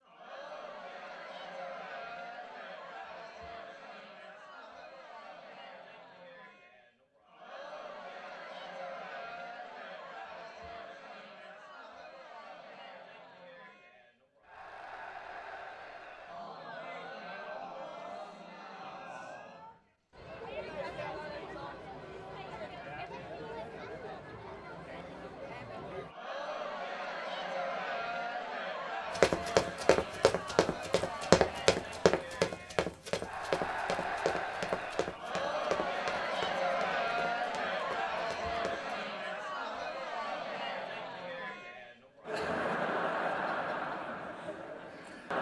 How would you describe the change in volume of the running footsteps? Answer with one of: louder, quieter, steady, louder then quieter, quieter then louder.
quieter.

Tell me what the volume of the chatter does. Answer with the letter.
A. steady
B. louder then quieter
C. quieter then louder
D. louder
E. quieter
D.